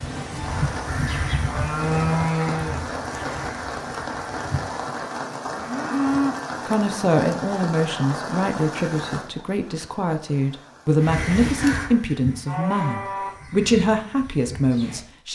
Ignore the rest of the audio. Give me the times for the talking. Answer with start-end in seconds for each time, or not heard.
6.7-15.2.